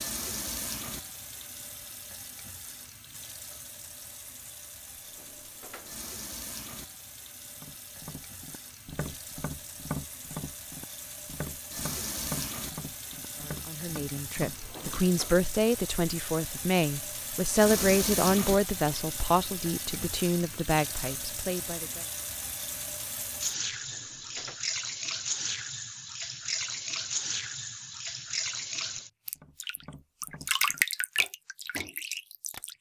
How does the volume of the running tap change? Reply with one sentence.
The volume of the running tap goes up.